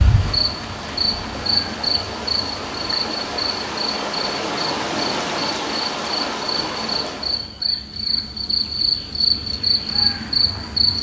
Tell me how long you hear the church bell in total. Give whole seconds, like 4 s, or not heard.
not heard.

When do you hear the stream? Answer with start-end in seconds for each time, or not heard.
0.0-7.5.